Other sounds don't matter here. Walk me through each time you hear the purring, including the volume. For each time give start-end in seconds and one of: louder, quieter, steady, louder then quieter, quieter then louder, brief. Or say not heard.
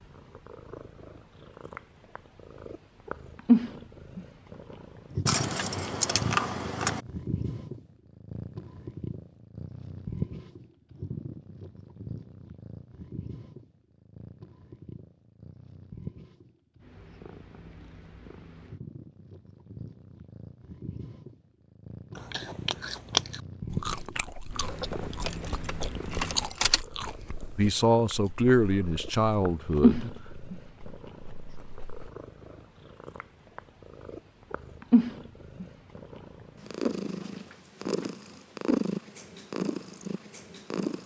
0.0-41.0 quieter then louder.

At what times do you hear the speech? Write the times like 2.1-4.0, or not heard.
27.6-30.1.